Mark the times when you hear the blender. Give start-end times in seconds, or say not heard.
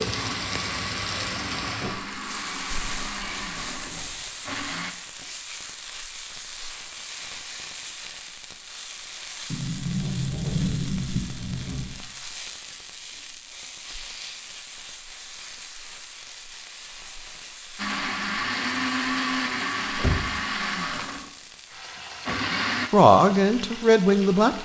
0.0-5.0, 17.8-22.9.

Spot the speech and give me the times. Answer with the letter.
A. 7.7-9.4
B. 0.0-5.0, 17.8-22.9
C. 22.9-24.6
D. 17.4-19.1
C.